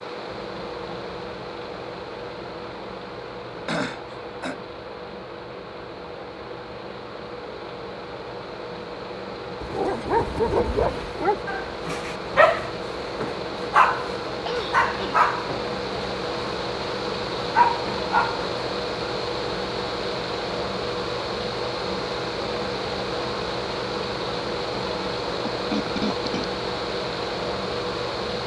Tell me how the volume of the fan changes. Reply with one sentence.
The loudness of the fan goes up.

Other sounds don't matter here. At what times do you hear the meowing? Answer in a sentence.
The meowing can't be heard in this clip.